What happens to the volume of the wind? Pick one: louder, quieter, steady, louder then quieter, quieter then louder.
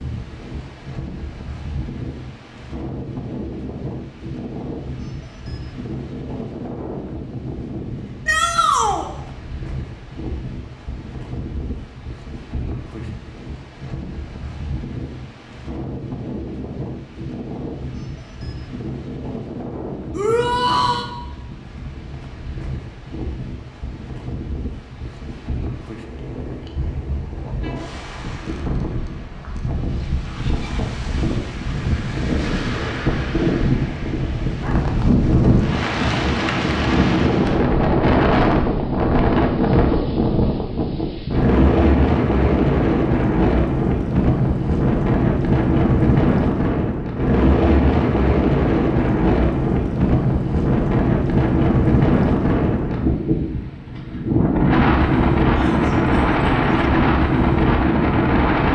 louder.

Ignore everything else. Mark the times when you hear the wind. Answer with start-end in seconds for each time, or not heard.
0.0-58.7.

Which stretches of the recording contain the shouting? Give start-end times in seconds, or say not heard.
8.2-9.1, 20.1-21.1, 55.5-56.9.